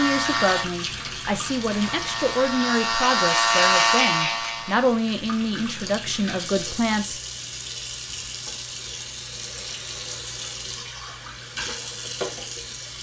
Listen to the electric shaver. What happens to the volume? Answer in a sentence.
The loudness of the electric shaver goes down, then up.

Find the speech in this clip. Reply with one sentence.
The speech can be heard from 0.0 to 7.2 s.